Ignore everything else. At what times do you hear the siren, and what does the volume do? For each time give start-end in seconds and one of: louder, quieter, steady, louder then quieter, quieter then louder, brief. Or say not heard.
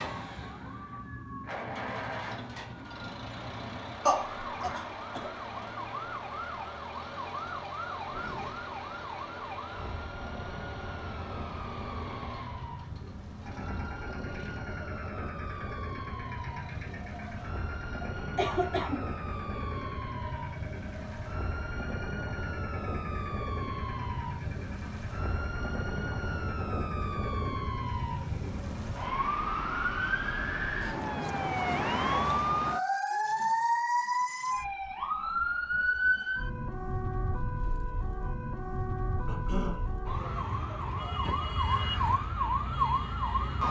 0.0-43.6 louder.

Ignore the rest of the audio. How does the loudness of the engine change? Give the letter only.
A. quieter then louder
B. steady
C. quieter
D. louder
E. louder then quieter
C.